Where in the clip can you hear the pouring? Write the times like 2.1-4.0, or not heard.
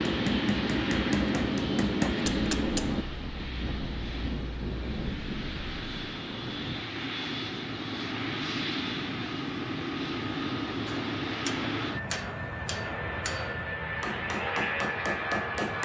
not heard.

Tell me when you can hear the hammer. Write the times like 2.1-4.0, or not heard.
0.0-3.0, 10.8-15.8.